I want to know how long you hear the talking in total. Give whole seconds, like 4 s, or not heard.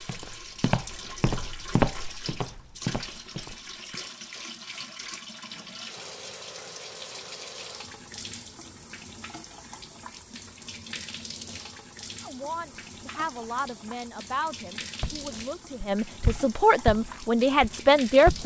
6 s.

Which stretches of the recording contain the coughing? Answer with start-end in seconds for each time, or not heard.
not heard.